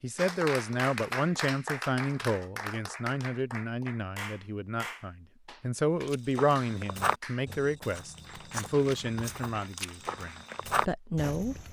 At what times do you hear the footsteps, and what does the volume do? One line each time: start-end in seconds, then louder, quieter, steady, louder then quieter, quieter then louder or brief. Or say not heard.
6.0-11.6 quieter then louder.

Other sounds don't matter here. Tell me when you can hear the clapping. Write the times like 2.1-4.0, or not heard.
0.1-10.7.